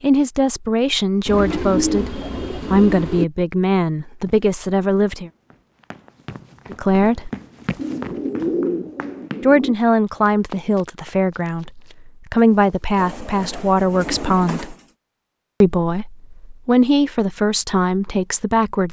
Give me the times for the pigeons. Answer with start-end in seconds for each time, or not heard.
1.2-3.2, 7.8-9.8, 12.9-14.8.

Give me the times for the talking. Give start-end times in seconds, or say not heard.
0.0-5.3, 6.7-7.3, 9.4-14.8, 15.6-18.8.